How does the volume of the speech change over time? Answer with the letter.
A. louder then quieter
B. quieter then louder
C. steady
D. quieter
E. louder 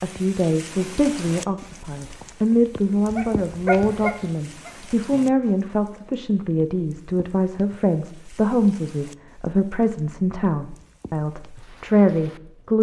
C.